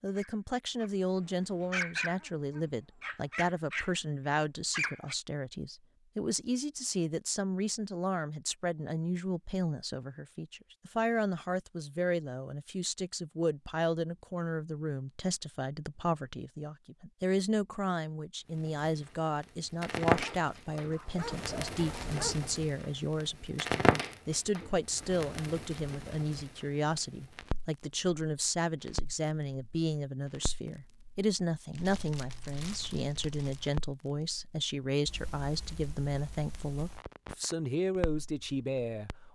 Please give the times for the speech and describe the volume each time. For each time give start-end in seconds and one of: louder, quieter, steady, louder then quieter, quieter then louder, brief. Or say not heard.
0.0-39.1 steady.